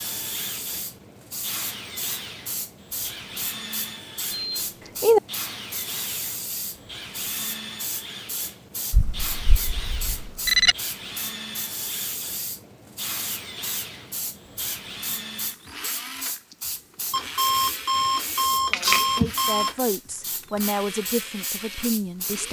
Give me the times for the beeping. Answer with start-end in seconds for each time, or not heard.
4.3-5.2, 8.9-10.8, 17.1-19.7.